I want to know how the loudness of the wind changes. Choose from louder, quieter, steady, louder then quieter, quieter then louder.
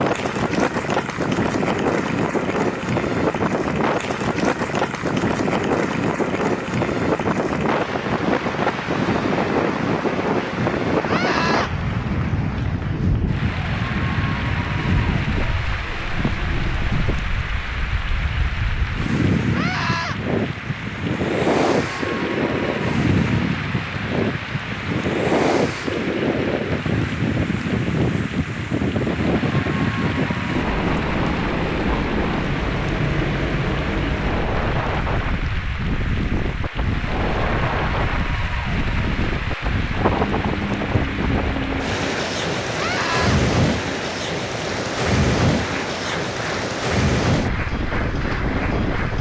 steady.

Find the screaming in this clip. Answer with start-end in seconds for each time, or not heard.
11.1-11.7, 19.5-20.1, 42.8-43.4.